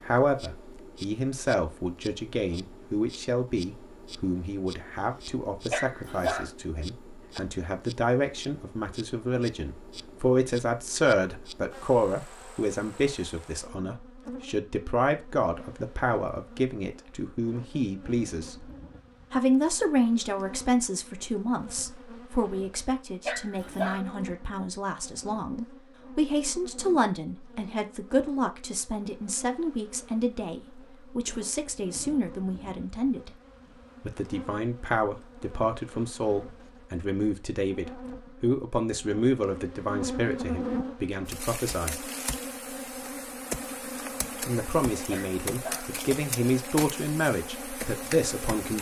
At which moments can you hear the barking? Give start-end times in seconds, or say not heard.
5.7-6.5, 23.2-24.0, 45.1-45.9.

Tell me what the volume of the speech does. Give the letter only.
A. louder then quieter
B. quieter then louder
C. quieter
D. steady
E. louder
D.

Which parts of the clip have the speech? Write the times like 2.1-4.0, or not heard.
0.0-18.6, 19.3-33.3, 34.0-42.0, 44.4-48.7.